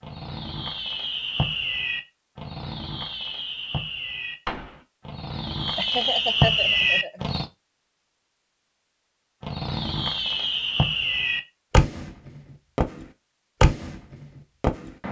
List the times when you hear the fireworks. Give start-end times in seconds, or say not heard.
0.0-7.5, 9.4-15.0.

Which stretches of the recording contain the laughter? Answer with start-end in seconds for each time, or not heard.
5.8-7.2.